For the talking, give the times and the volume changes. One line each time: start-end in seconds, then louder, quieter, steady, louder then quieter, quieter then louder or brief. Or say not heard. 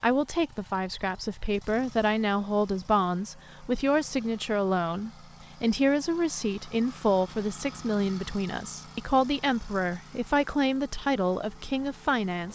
0.0-12.4 steady.